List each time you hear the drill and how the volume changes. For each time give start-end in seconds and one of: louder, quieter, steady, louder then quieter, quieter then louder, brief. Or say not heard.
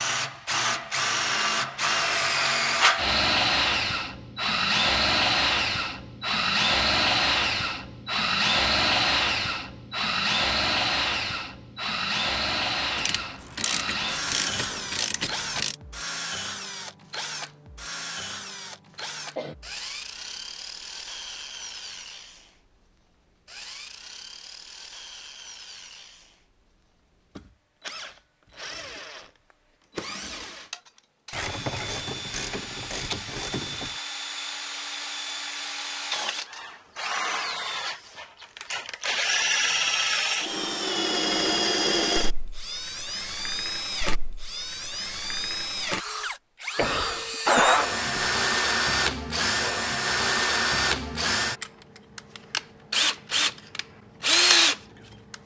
0.0-55.4 quieter then louder.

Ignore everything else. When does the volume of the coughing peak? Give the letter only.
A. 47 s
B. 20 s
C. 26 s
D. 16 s
A.